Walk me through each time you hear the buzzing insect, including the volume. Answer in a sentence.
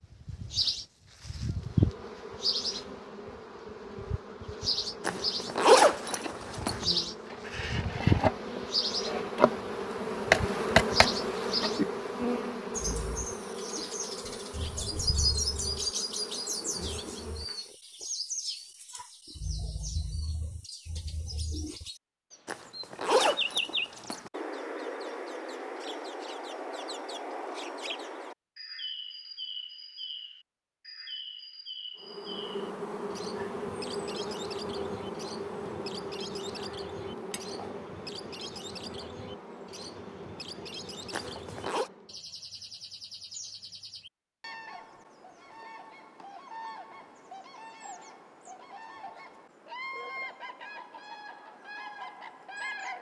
The buzzing insect can be heard from 1.5 to 17.7 s, getting louder then quieter; and from 32.0 to 42.1 s, getting quieter.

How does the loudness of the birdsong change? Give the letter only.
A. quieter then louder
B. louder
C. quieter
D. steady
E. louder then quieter
C.